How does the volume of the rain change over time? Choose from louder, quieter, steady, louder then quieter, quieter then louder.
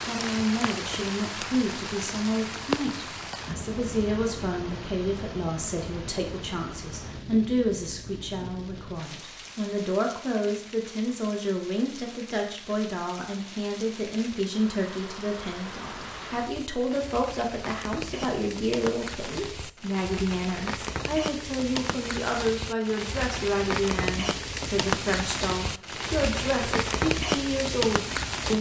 quieter then louder.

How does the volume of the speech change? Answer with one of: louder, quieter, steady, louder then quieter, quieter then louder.
steady.